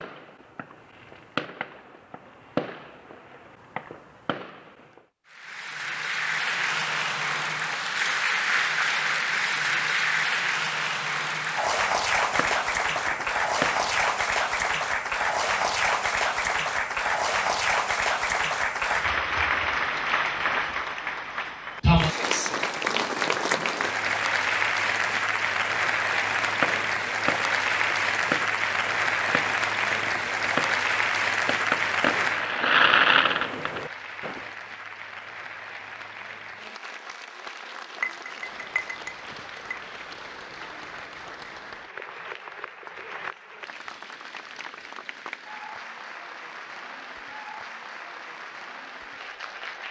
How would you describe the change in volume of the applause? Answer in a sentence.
The loudness of the applause goes down.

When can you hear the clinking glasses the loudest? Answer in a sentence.
The volume of the clinking glasses peaks at 38 seconds.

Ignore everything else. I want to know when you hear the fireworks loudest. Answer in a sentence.
The volume of the fireworks peaks at 33 seconds.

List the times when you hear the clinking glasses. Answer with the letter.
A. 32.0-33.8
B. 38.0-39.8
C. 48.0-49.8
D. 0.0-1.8
B.